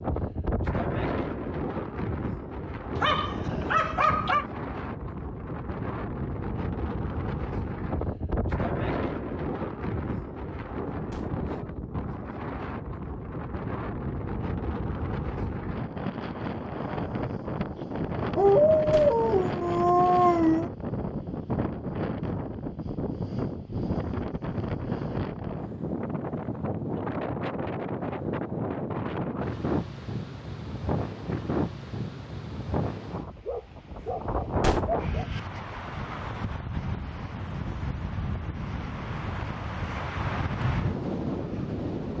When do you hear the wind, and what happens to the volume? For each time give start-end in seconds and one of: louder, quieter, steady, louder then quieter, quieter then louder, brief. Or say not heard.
0.0-42.1 steady.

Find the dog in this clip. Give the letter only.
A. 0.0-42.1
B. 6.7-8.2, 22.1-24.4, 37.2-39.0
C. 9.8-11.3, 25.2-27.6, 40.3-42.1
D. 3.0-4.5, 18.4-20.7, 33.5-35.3
D.